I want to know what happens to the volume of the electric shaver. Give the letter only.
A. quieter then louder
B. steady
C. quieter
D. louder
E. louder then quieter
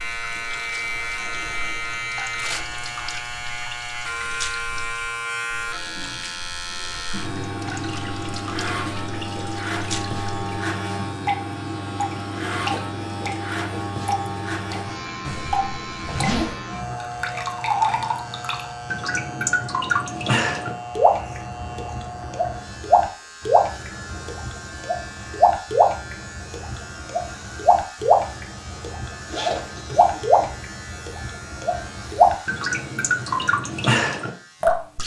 C.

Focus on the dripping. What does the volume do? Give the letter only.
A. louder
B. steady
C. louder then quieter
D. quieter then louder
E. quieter
A.